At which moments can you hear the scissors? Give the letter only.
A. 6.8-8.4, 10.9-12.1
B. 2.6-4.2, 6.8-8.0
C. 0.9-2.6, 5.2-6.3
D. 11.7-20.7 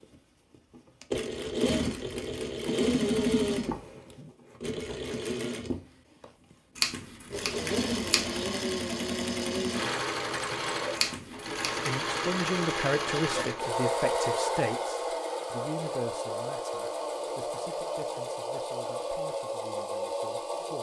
A.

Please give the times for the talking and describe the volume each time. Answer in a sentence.
You can hear the talking from 11.7 to 20.7 s, getting quieter.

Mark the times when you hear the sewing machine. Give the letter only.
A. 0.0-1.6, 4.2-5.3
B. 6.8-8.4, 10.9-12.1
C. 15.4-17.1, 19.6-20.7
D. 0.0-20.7
D.